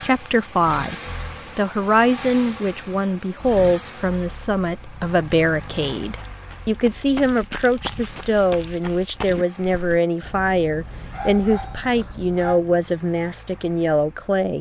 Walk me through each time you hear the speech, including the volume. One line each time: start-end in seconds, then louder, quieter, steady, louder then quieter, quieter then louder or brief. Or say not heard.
0.0-0.9 brief
1.6-14.5 steady.